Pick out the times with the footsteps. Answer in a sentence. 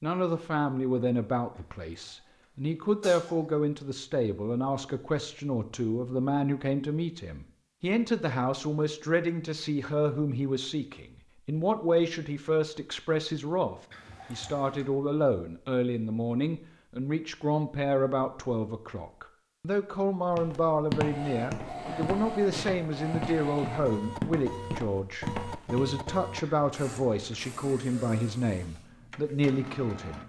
The footsteps can be heard from 20.3 to 25.9 s.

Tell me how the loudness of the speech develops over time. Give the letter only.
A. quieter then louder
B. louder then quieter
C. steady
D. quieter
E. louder
C.